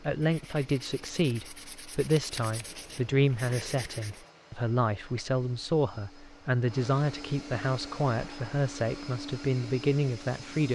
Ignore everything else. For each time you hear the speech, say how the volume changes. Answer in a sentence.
The speech can be heard from 0.0 to 10.7 s, at a steady volume.